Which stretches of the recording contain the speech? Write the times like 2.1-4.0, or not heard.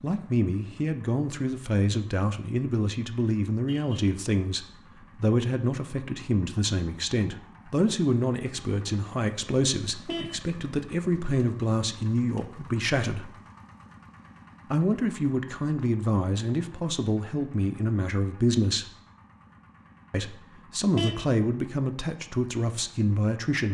0.0-13.3, 14.7-18.9, 20.1-23.7.